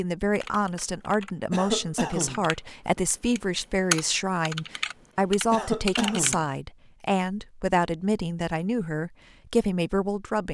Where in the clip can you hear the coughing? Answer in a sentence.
You can hear the coughing from 1.5 to 2.5 s and from 5.5 to 6.5 s.